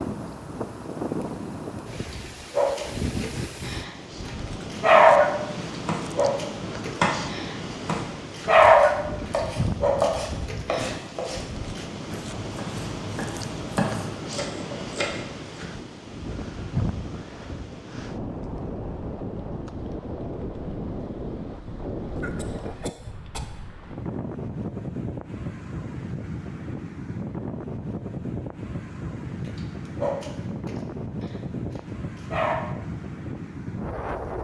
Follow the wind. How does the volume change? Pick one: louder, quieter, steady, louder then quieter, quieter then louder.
steady.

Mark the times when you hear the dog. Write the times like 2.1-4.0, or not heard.
2.5-5.3, 6.2-9.0, 9.8-11.8, 29.9-32.5.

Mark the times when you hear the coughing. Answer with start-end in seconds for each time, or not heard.
22.1-23.6.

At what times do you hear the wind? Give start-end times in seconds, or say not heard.
0.0-34.3.